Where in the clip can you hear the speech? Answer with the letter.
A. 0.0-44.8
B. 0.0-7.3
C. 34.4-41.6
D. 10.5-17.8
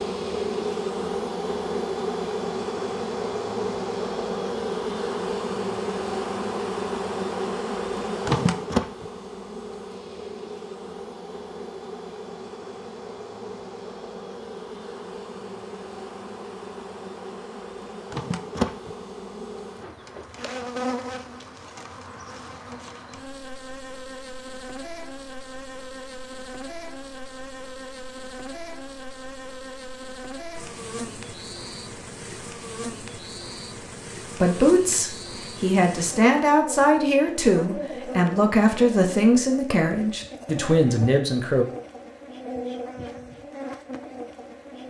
C.